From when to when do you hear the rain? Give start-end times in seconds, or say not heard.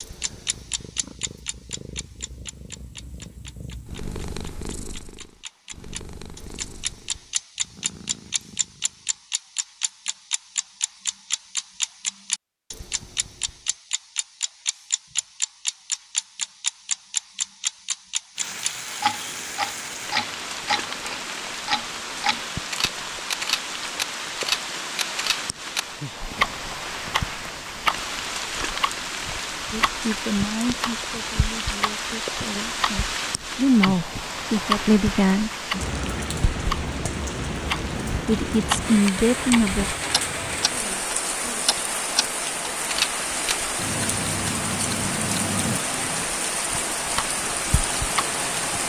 18.4-48.8.